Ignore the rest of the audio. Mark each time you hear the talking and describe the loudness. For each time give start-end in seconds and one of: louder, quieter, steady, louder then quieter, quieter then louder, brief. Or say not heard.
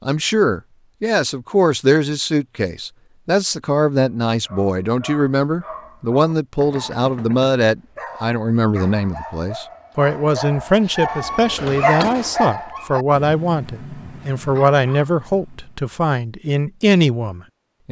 0.0-17.8 steady.